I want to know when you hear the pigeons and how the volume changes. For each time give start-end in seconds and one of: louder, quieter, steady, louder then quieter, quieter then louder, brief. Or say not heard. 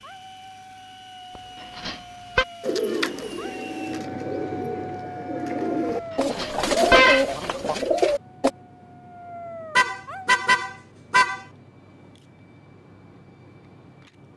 2.6-8.5 louder.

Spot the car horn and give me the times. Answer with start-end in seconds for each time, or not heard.
1.4-2.5, 6.3-7.8, 9.8-11.4.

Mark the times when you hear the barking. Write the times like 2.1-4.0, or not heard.
0.0-6.2, 8.2-10.3.